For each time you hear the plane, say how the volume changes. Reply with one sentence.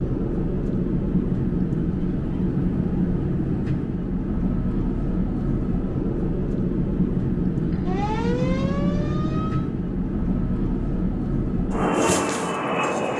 The plane can be heard from 0.0 to 13.1 s, at a steady volume.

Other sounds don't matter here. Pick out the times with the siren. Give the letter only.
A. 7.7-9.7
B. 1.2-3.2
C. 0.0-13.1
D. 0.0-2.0
A.